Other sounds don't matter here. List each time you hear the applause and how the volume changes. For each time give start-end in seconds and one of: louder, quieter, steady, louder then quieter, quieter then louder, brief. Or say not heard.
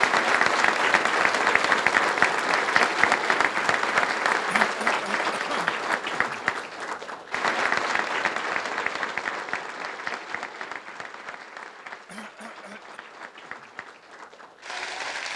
0.0-15.3 quieter.